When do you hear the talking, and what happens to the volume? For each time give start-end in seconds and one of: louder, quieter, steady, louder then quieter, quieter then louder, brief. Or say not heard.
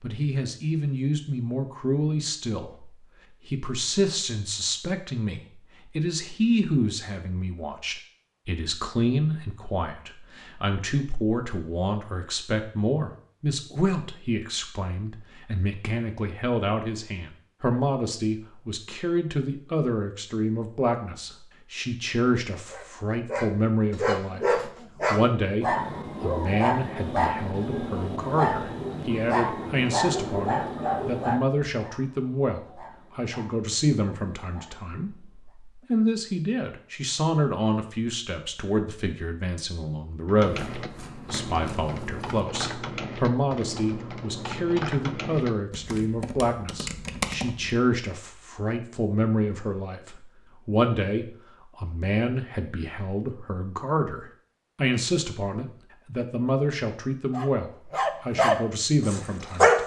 0.0-59.8 steady.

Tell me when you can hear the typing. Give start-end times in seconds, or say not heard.
40.2-47.8.